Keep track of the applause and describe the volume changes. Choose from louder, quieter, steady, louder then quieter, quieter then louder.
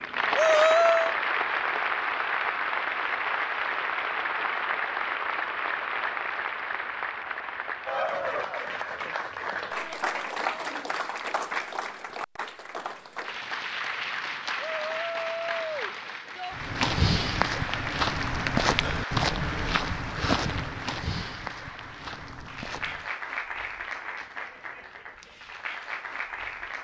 quieter.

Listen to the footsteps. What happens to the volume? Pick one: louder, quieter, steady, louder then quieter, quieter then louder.
quieter.